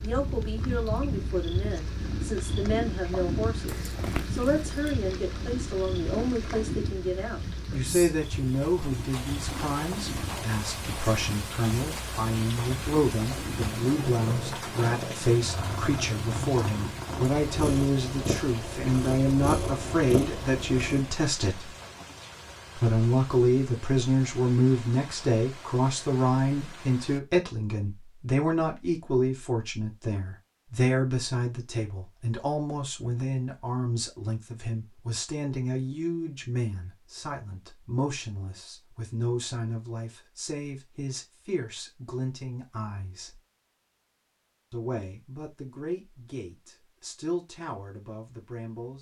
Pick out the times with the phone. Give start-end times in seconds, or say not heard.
not heard.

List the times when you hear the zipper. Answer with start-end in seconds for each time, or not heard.
3.6-4.9.